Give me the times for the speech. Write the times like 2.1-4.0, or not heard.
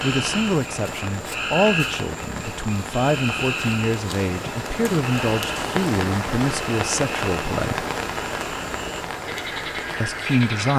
0.0-7.8, 10.0-10.7.